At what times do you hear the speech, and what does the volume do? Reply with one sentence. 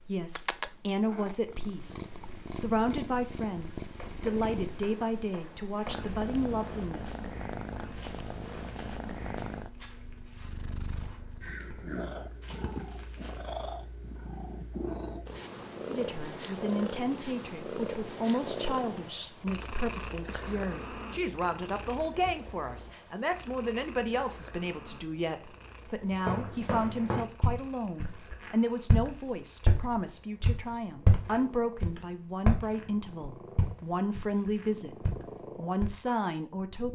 The speech can be heard from 0.1 to 7.2 s, at a steady volume; and from 15.8 to 36.9 s, at a steady volume.